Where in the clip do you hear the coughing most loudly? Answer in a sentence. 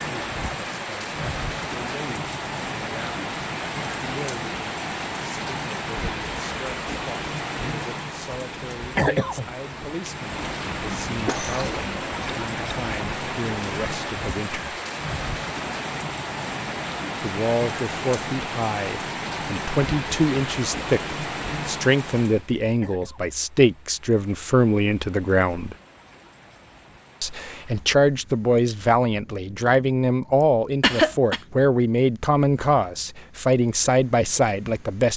The volume of the coughing peaks at 31 seconds.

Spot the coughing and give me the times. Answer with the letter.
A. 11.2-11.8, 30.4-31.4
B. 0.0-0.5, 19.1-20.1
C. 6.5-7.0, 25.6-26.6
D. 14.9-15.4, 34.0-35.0
A.